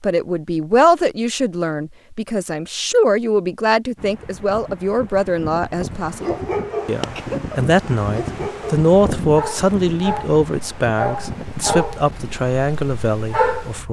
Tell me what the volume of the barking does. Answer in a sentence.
The volume of the barking goes down.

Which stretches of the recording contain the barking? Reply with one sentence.
The barking can be heard from 6.0 to 13.8 s.